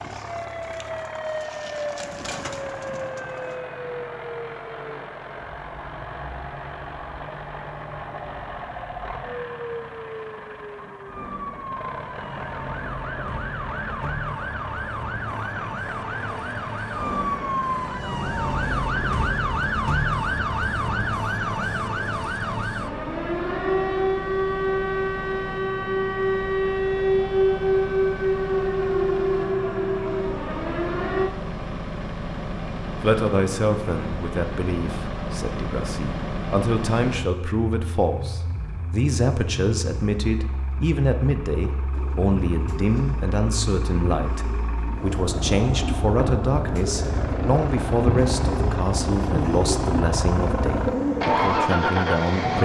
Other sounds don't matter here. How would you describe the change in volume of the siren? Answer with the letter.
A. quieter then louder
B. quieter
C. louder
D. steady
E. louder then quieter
C.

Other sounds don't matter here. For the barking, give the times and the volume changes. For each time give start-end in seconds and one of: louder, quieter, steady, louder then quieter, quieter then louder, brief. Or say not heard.
not heard.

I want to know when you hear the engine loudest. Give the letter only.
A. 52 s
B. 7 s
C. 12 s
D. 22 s
A.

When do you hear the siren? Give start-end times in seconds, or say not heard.
0.2-31.4.